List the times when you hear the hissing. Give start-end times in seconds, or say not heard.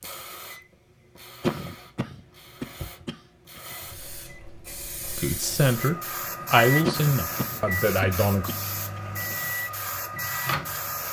0.0-11.0.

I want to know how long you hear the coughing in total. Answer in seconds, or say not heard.
4 s.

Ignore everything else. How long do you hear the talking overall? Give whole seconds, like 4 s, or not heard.
3 s.